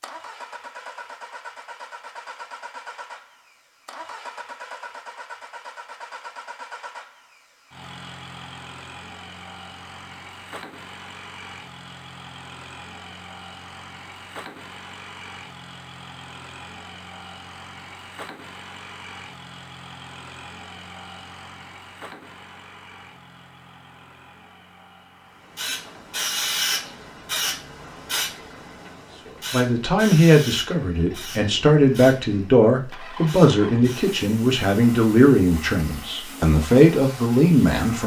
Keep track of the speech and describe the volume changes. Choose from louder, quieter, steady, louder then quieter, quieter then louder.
steady.